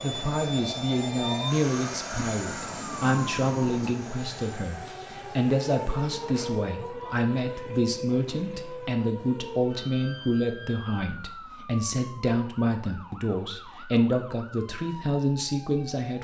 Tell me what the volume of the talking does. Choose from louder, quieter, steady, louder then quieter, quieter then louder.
steady.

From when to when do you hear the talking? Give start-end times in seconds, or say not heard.
0.0-16.1.